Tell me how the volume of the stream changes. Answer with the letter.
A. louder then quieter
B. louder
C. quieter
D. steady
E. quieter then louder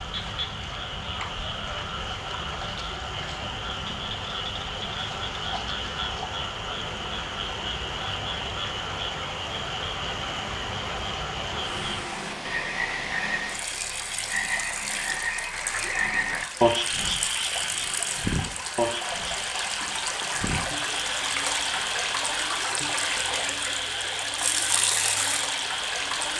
B.